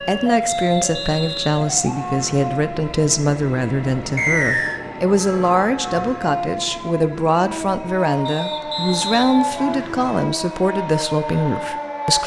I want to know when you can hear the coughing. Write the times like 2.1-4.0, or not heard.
not heard.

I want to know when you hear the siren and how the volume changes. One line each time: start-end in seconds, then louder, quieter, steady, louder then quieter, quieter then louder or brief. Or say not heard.
0.0-12.2 quieter then louder.